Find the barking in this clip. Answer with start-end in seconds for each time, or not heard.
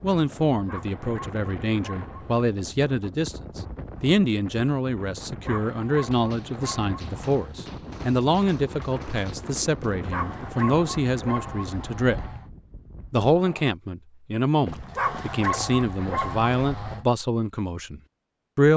0.5-2.5, 5.2-7.6, 9.8-12.5, 14.7-17.1.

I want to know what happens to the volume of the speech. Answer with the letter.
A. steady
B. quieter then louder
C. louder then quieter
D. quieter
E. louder
A.